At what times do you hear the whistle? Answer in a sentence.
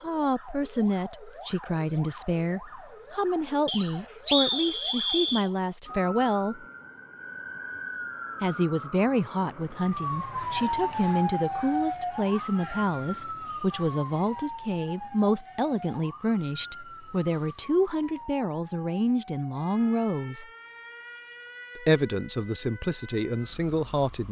You can hear the whistle from 3.6 to 5.5 s.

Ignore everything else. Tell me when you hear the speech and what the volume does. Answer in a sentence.
The speech can be heard from 0.0 to 6.7 s, at a steady volume; from 8.4 to 20.4 s, at a steady volume; and briefly from 21.8 to 24.2 s.